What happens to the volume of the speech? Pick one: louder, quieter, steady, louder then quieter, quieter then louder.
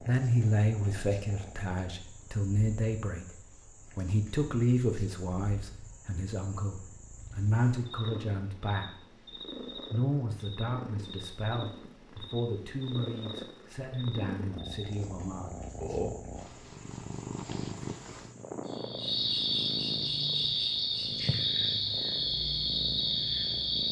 quieter.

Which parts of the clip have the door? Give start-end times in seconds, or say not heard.
not heard.